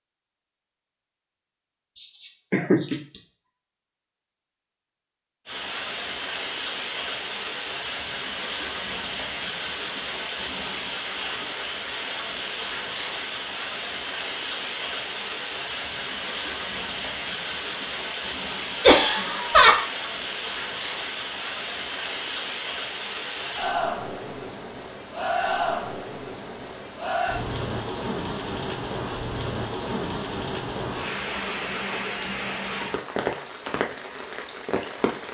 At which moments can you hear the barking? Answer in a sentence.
The barking can't be heard in this clip.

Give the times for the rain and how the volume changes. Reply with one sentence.
You can hear the rain from 5.5 to 35.2 s, at a steady volume.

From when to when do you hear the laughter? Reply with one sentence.
The laughter can be heard from 2.5 to 3.0 s and from 18.8 to 19.9 s.